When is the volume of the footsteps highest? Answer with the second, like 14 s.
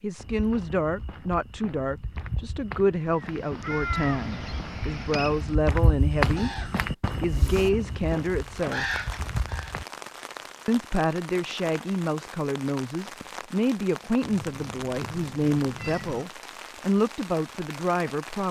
6 s.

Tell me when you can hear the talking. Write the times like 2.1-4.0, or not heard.
0.0-6.5, 7.2-8.8, 10.7-18.4.